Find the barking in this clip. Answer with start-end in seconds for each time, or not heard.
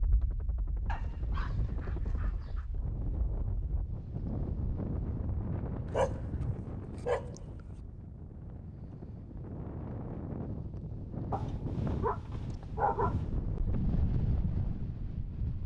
0.8-2.6, 5.8-7.8, 11.3-13.2.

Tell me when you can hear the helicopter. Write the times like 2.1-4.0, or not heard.
0.0-2.5.